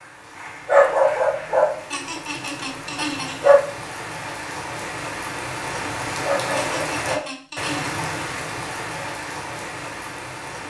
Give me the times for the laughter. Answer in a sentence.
The laughter can be heard from 1.9 to 3.5 s and from 6.5 to 7.9 s.